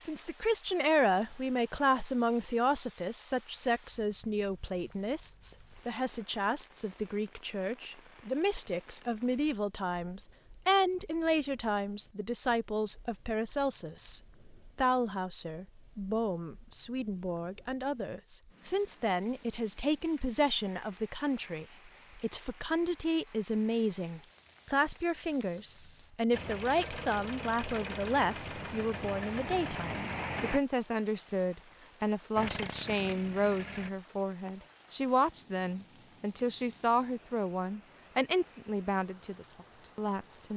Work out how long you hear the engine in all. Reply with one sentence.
You can hear the engine for 6 seconds altogether.